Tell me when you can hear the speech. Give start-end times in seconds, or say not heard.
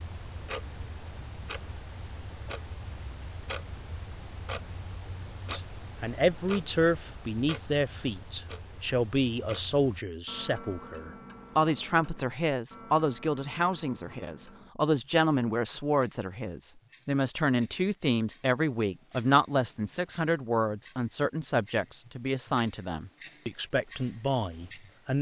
5.5-25.1.